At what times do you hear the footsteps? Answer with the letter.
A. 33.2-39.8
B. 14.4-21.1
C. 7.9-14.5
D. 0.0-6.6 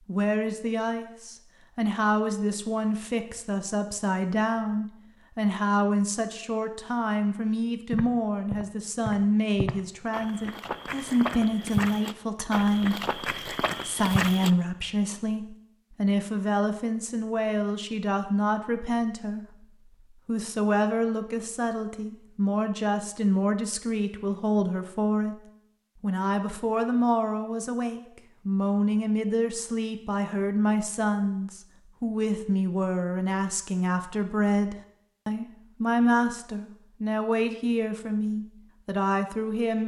C.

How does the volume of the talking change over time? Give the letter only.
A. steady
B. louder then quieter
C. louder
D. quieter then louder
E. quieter
A.